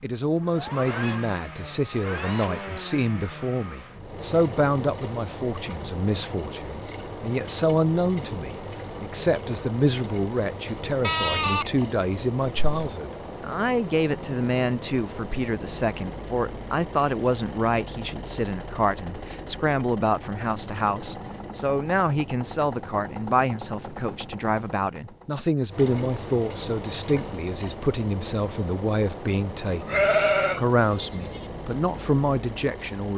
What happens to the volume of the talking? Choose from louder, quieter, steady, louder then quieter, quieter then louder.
steady.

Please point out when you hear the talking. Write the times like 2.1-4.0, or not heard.
0.0-33.1.